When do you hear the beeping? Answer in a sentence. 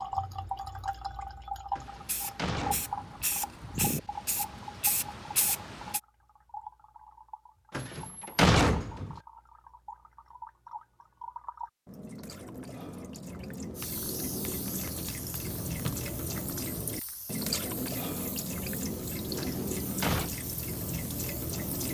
The beeping can't be heard in this clip.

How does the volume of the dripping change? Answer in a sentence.
The loudness of the dripping goes down, then up.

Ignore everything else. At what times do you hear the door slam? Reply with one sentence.
The door slam can be heard from 1.8 to 3.2 s, from 7.7 to 9.2 s and from 19.4 to 20.3 s.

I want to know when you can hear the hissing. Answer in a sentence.
You can hear the hissing from 1.8 to 6.0 s and from 13.8 to 21.8 s.